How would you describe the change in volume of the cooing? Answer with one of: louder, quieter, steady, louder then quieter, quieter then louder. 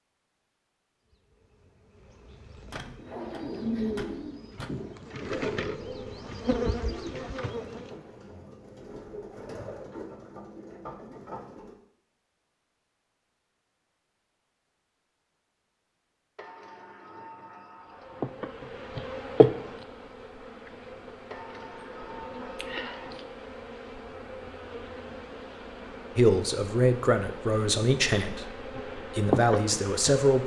quieter.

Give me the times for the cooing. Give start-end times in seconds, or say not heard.
3.0-11.8.